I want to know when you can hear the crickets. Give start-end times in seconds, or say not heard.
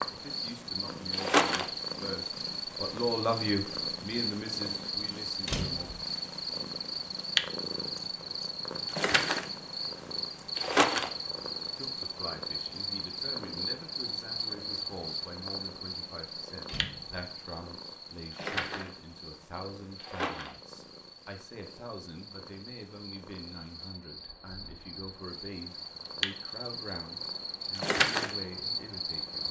0.0-29.4.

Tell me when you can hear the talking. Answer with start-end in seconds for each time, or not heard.
0.1-5.9, 11.8-29.4.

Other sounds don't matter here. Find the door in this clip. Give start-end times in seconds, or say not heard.
5.5-6.0, 16.6-17.2.